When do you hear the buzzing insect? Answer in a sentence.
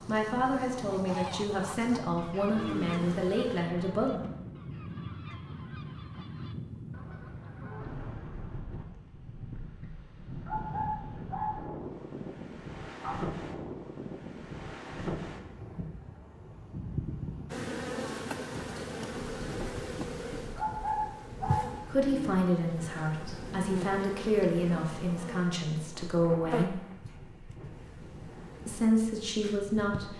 The buzzing insect can be heard from 0.0 to 3.6 s and from 17.5 to 30.1 s.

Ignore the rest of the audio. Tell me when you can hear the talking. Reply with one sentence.
You can hear the talking from 0.1 to 4.2 s, from 21.9 to 26.8 s and from 28.6 to 30.1 s.